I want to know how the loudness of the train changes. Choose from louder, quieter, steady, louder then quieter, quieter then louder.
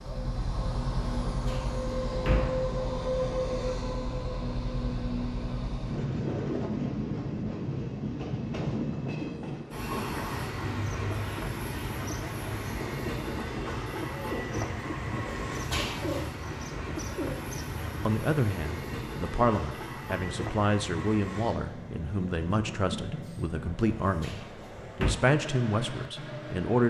quieter.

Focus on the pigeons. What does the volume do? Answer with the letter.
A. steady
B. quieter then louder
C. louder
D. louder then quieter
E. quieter
A.